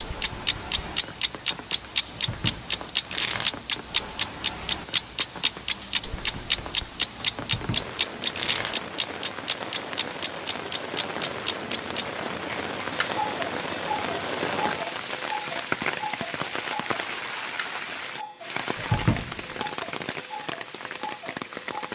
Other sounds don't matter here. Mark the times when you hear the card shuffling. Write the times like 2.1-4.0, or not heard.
2.1-3.5, 7.4-8.8, 18.8-19.8.